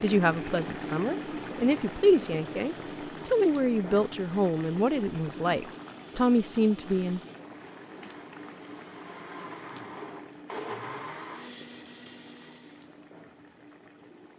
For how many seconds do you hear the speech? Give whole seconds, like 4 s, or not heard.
7 s.